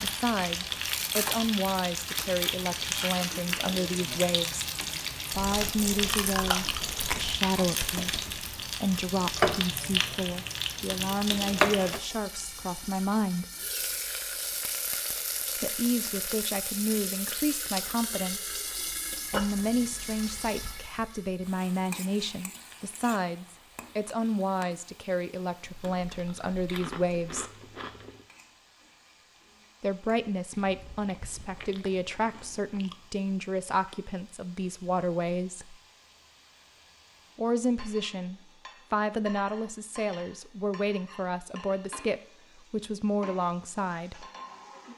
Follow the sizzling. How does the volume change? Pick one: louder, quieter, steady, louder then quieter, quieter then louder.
quieter then louder.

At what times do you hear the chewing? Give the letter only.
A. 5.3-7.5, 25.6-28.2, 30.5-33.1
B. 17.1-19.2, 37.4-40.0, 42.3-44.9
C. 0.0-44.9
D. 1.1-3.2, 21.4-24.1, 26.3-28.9
A.